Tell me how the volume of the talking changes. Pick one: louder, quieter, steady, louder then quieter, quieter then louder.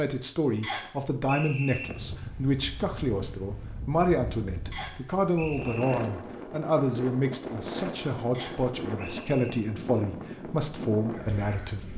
steady.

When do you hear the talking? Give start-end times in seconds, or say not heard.
0.0-11.9.